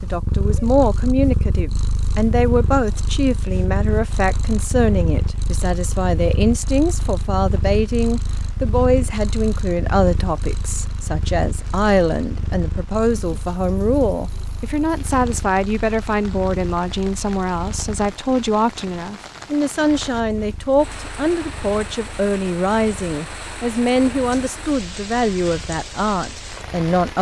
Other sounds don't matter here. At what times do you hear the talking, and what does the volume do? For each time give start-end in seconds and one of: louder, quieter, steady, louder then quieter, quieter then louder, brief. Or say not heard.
0.0-27.1 steady.